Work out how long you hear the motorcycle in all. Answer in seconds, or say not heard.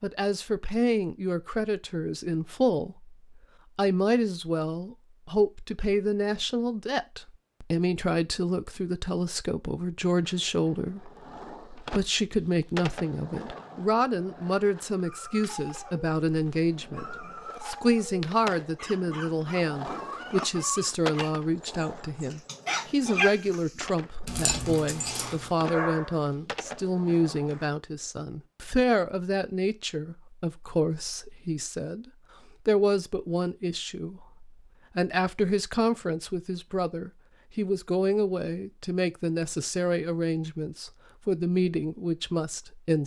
not heard.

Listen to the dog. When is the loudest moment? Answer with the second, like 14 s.
23 s.